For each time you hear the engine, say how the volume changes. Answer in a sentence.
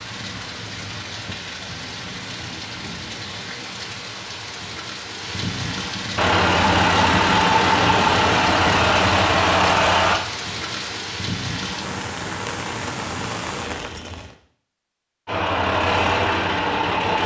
The engine can be heard from 6.2 to 10.2 s, at a steady volume; and briefly from 15.2 to 17.2 s.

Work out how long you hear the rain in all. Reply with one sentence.
You can hear the rain for 14 seconds altogether.